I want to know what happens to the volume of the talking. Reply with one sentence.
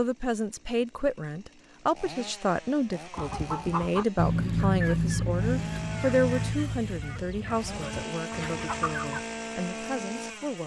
The loudness of the talking goes down.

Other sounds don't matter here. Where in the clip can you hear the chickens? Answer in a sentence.
The chickens can be heard from 3.1 to 9.2 s.